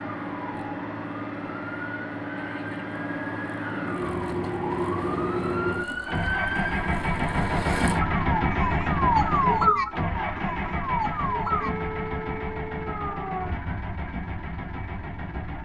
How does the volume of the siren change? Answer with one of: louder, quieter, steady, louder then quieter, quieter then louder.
louder then quieter.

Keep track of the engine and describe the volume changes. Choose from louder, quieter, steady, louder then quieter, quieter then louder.
louder then quieter.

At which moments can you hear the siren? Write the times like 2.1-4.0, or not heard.
0.0-15.6.